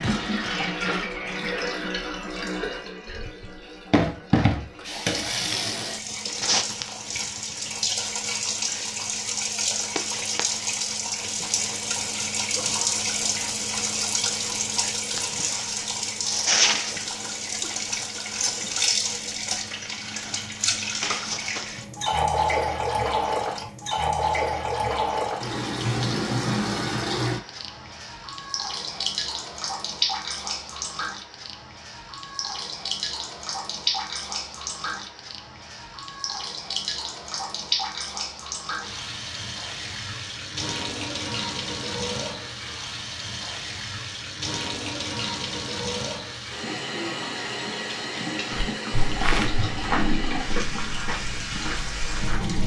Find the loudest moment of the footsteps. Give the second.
49 s.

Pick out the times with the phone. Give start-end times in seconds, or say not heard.
not heard.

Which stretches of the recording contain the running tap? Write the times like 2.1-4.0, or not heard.
0.0-52.6.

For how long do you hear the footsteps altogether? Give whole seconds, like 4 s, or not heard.
4 s.